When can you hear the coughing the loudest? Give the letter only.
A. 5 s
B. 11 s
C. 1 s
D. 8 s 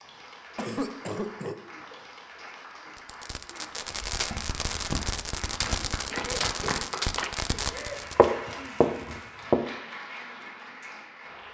C.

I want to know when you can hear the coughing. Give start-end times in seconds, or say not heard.
0.6-1.6, 6.1-8.8.